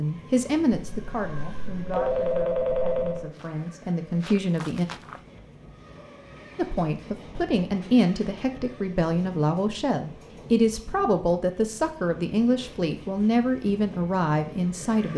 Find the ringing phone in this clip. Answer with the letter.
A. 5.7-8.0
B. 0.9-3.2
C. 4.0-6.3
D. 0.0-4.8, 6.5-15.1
B.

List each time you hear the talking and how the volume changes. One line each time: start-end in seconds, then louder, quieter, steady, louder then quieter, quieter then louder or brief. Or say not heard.
0.0-4.8 quieter then louder
6.5-15.1 steady.